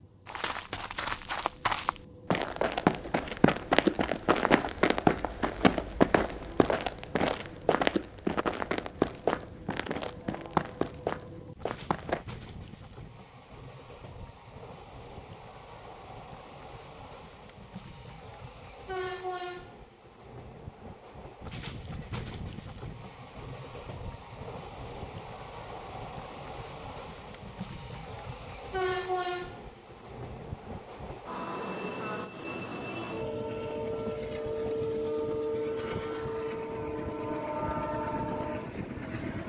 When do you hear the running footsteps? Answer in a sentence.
The running footsteps can be heard from 0.2 to 12.2 s.